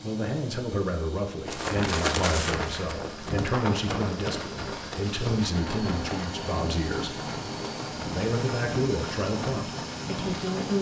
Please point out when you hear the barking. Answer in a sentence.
You can't hear the barking here.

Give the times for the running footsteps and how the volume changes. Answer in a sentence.
You can hear the running footsteps from 1.4 to 10.7 s, getting quieter.